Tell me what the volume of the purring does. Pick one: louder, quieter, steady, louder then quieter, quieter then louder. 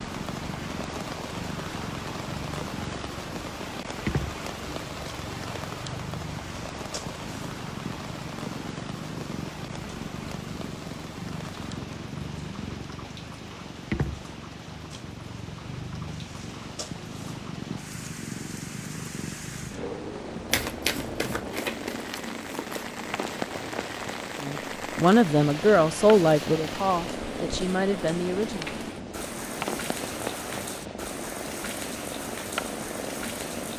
steady.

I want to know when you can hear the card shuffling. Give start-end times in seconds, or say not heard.
20.5-22.9.